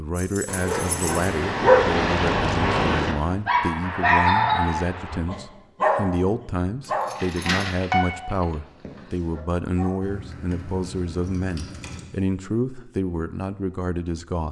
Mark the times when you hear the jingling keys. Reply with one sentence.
The jingling keys can be heard from 0.1 to 1.3 s, from 6.8 to 7.8 s and from 10.0 to 12.1 s.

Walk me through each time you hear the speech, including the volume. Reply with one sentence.
The speech can be heard from 0.0 to 14.4 s, at a steady volume.